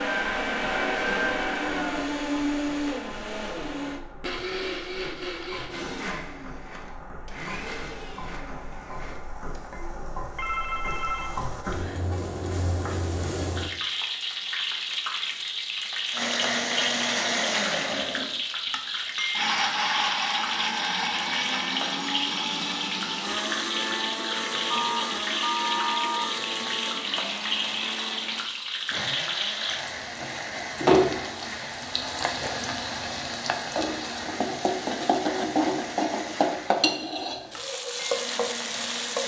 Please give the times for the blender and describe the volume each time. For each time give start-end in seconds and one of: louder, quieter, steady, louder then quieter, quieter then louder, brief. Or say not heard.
0.0-9.7 quieter
16.1-39.2 quieter.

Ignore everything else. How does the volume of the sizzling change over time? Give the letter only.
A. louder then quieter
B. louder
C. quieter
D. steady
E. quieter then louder
B.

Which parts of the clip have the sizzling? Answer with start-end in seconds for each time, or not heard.
0.1-39.2.